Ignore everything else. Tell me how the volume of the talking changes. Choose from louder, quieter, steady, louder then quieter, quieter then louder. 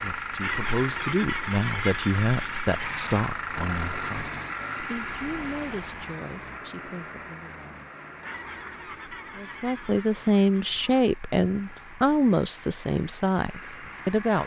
quieter then louder.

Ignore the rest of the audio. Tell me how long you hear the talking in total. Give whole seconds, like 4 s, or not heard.
13 s.